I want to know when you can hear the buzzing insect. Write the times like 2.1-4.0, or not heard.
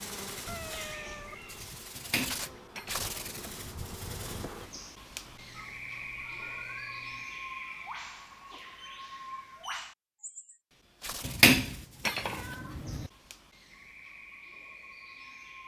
0.0-4.7.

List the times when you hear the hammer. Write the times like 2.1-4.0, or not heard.
1.9-3.8, 11.2-13.1.